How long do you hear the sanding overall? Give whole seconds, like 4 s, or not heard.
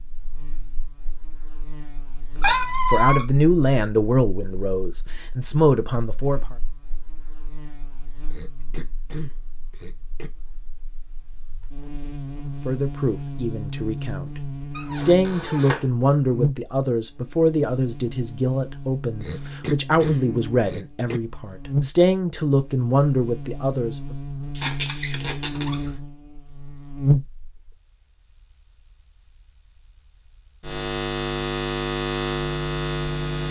not heard.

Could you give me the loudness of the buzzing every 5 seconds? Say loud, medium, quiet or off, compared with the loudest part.
quiet, quiet, medium, medium, medium, loud, loud.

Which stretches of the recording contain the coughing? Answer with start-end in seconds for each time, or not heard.
8.3-10.3, 19.2-21.2.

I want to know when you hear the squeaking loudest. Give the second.
3 s.